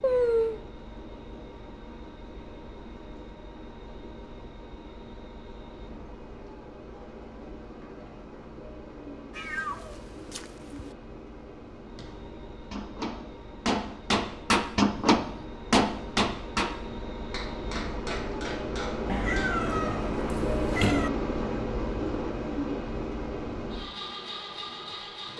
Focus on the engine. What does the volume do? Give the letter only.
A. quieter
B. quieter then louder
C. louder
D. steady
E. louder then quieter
C.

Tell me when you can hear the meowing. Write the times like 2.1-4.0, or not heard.
0.0-0.6, 9.3-10.8, 19.1-21.1.